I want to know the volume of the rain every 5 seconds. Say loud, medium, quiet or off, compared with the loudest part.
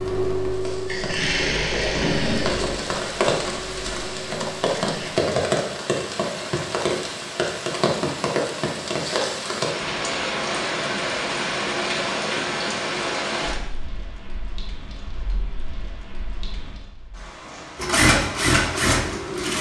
loud, loud, loud, quiet.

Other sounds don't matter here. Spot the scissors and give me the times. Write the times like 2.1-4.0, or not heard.
not heard.